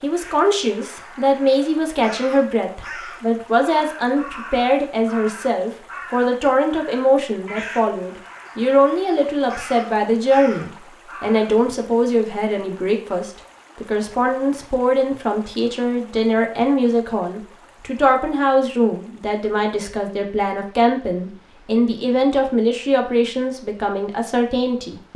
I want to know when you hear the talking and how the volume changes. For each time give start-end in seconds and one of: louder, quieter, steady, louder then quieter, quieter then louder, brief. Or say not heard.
0.0-25.1 steady.